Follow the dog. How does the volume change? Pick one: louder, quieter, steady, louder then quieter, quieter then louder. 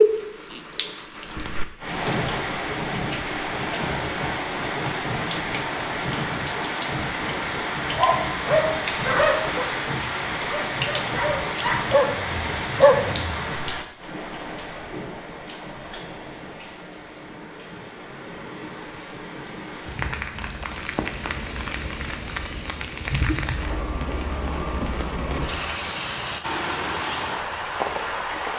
quieter then louder.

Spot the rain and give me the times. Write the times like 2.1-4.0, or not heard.
0.0-28.5.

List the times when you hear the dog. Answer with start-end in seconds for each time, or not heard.
7.9-13.4.